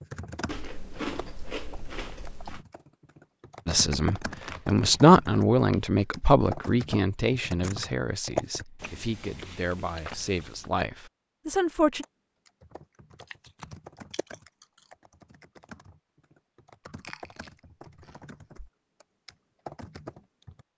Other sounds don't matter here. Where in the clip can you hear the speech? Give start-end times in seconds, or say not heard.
3.6-12.1.